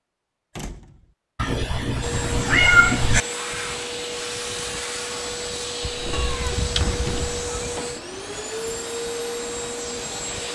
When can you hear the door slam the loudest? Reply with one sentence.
The loudest moment of the door slam is at 7 seconds.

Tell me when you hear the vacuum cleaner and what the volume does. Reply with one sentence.
The vacuum cleaner can be heard from 2.0 to 10.5 s, at a steady volume.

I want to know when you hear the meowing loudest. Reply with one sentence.
The volume of the meowing peaks at 3 seconds.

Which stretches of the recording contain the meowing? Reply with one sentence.
You can hear the meowing from 1.4 to 3.2 s and from 6.1 to 7.7 s.